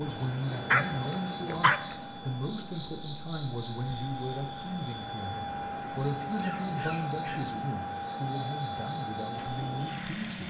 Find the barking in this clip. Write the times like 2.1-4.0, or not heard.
0.7-1.9, 6.2-7.5.